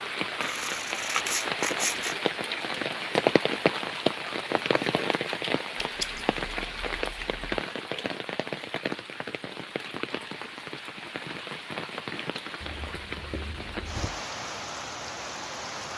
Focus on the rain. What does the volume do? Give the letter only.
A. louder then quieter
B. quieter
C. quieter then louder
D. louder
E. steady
B.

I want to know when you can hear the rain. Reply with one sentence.
You can hear the rain from 0.0 to 15.9 s.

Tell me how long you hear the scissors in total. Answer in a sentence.
You can hear the scissors for 5 seconds altogether.